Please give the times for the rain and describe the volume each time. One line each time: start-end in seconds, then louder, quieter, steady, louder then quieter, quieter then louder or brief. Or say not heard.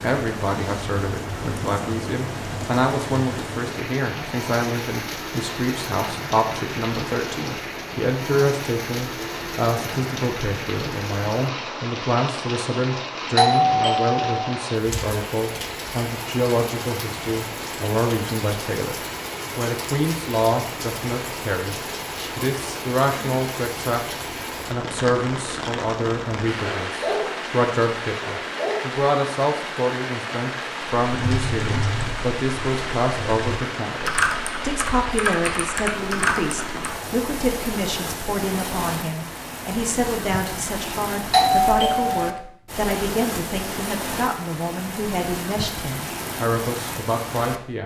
0.0-47.6 steady.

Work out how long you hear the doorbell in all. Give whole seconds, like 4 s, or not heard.
2 s.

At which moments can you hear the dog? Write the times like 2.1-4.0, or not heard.
26.6-27.4, 28.2-28.9.